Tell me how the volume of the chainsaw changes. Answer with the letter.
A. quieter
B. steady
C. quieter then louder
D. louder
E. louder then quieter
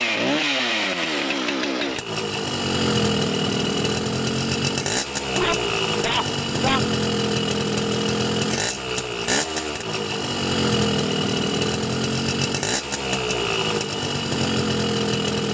B.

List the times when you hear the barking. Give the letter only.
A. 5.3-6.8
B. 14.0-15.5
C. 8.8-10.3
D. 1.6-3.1
A.